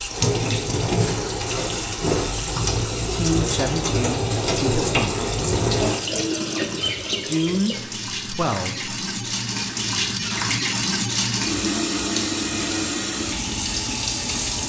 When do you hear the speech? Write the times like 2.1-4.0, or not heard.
3.0-5.2, 7.2-8.9.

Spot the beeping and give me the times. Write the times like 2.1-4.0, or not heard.
not heard.